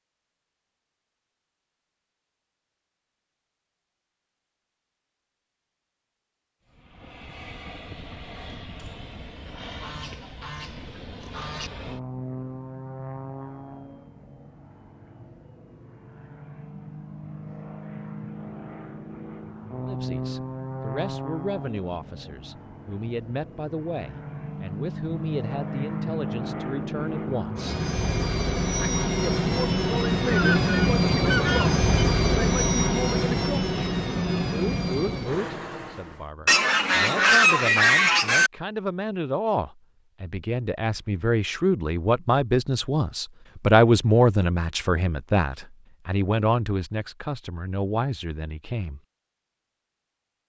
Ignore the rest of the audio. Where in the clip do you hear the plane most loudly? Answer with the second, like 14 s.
31 s.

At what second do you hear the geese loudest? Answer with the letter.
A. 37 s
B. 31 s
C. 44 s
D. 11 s
A.